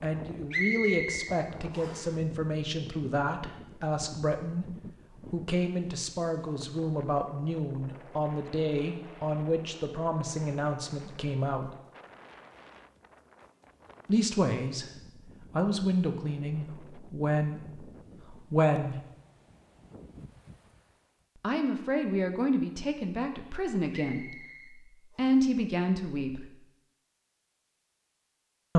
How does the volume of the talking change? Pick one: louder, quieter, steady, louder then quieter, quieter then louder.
steady.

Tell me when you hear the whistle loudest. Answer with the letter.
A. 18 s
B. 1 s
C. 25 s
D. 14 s
B.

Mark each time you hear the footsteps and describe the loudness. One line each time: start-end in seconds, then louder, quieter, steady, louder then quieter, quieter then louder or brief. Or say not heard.
not heard.